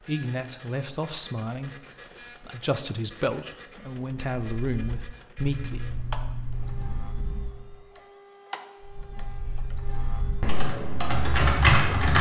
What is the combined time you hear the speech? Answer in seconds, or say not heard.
6 s.